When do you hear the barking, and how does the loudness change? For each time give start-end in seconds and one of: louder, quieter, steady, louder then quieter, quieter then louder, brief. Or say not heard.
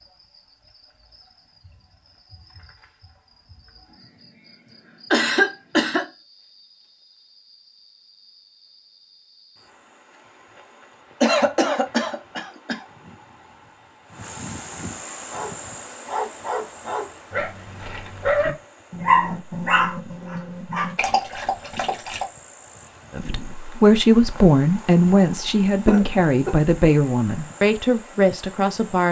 15.2-22.2 louder then quieter.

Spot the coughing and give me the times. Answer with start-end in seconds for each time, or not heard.
5.1-6.0, 11.2-12.8, 25.9-26.6.